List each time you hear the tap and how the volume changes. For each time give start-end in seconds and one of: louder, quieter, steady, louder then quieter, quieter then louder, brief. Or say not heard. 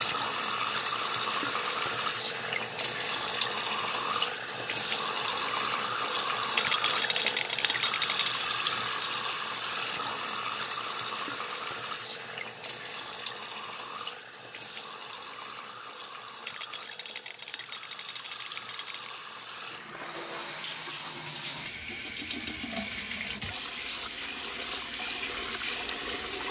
0.0-26.4 quieter then louder.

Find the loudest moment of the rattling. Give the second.
7 s.